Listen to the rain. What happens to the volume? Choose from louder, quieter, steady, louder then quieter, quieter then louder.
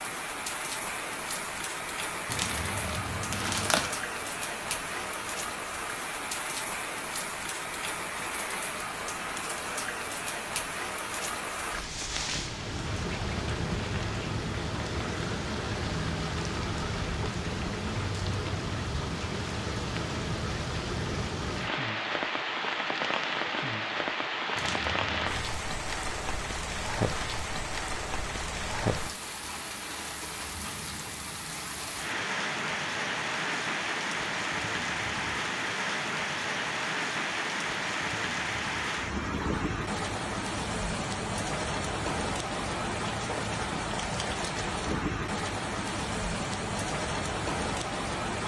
steady.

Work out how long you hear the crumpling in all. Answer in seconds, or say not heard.
3 s.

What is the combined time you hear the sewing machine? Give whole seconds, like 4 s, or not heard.
not heard.